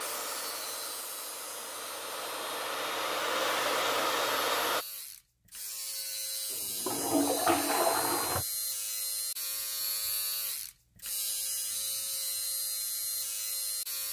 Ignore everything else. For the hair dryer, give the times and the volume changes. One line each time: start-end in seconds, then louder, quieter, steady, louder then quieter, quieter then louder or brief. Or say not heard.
0.0-4.8 louder.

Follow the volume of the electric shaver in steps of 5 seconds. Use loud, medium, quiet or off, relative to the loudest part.
medium, loud, loud.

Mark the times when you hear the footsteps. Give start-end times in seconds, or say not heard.
not heard.